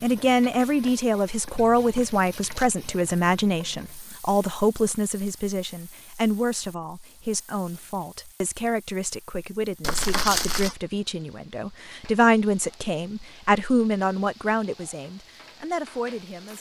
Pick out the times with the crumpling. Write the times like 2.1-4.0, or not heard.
2.0-2.8, 9.8-10.8.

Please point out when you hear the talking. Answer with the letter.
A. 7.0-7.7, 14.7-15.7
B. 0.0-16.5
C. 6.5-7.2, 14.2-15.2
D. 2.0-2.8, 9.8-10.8
B.